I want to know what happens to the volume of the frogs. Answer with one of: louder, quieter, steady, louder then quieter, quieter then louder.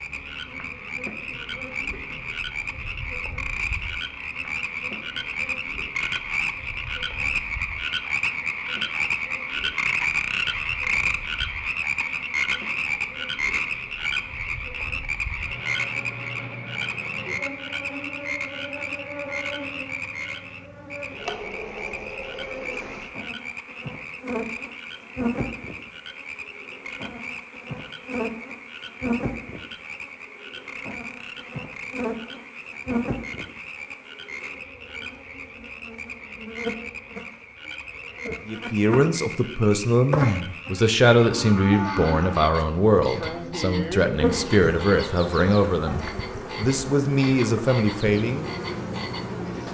quieter.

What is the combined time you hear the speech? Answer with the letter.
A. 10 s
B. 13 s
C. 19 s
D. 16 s
A.